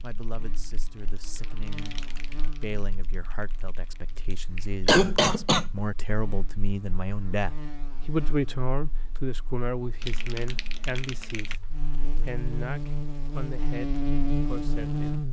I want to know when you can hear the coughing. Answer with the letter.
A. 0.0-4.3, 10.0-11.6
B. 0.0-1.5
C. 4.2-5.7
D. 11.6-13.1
C.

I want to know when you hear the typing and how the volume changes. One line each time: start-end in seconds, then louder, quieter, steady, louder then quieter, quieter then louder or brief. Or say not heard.
0.0-4.3 louder then quieter
10.0-11.6 brief.